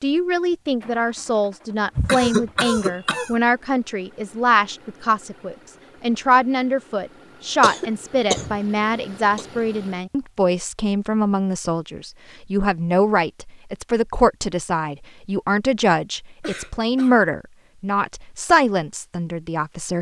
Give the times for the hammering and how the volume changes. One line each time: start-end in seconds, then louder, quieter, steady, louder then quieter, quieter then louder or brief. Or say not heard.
not heard.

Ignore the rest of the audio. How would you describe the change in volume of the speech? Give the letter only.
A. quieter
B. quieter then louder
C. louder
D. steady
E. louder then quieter
D.